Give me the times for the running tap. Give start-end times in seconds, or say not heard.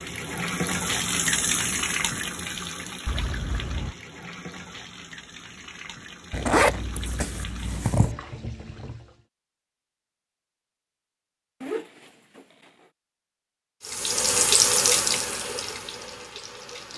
0.0-9.2, 13.8-16.9.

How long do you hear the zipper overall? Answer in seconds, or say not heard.
4 s.